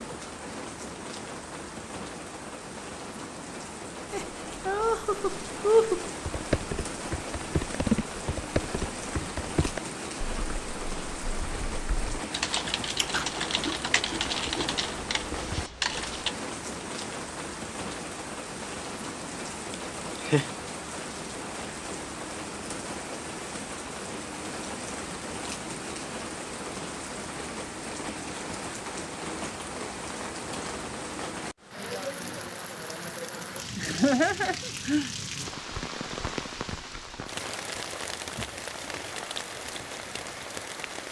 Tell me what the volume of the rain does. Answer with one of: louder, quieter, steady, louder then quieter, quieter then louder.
steady.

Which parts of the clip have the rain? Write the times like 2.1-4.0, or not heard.
0.0-41.0.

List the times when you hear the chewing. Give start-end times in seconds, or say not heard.
12.8-14.8.